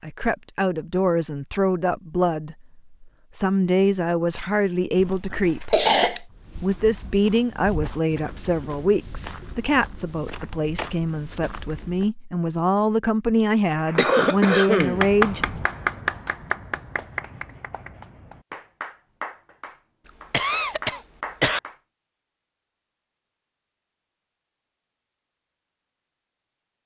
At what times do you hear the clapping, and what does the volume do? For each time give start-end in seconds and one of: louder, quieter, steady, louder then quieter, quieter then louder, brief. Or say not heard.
13.8-21.8 quieter.